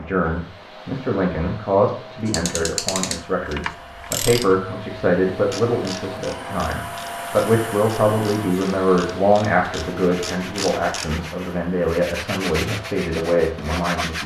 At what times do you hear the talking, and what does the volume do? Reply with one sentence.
The talking can be heard from 0.0 to 14.2 s, at a steady volume.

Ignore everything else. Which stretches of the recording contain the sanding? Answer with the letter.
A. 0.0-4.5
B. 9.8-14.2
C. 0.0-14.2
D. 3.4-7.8
B.